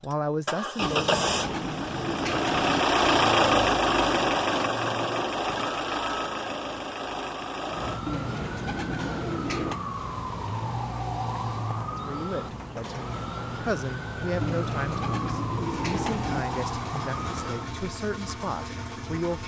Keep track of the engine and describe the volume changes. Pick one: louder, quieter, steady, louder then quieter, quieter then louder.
quieter.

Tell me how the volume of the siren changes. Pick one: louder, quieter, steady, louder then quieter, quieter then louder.
steady.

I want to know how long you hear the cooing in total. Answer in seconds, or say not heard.
6 s.